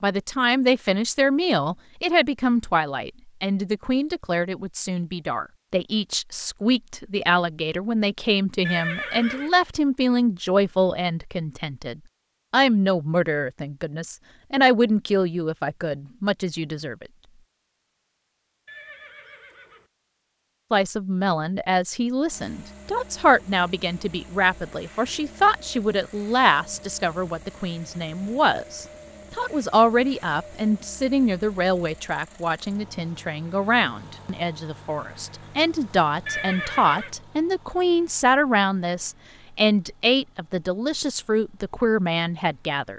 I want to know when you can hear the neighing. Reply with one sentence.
You can hear the neighing from 8.7 to 9.6 s, from 18.6 to 19.9 s and from 36.2 to 37.1 s.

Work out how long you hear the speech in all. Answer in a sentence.
The speech can be heard for 39 seconds in total.